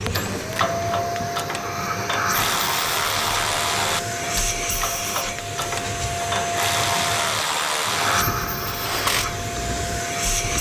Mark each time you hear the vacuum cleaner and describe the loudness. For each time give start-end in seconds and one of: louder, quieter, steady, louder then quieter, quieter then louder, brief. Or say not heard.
0.0-10.5 steady.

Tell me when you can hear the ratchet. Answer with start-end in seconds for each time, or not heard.
0.1-9.2.